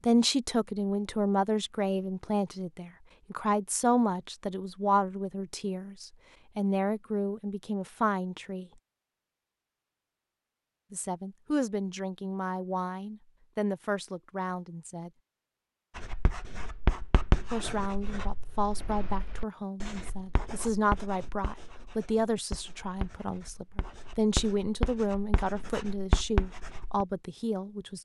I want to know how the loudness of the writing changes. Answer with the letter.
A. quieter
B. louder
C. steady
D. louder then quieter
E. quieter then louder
E.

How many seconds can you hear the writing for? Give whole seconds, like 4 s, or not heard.
11 s.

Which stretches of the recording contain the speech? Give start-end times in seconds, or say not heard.
0.1-8.7, 10.9-15.1, 17.5-28.0.